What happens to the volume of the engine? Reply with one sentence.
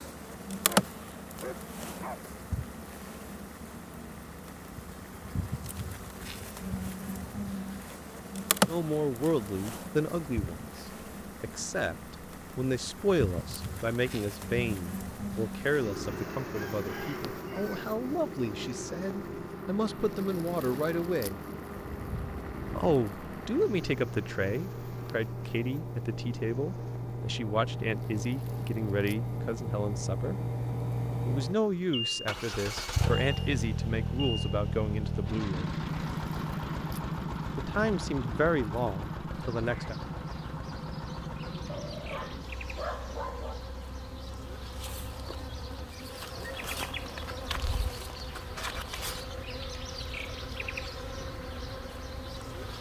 The loudness of the engine goes up, then down.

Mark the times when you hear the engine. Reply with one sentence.
You can hear the engine from 0.0 to 52.6 s.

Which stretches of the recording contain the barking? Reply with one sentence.
The barking can be heard from 0.7 to 2.2 s and from 41.6 to 43.6 s.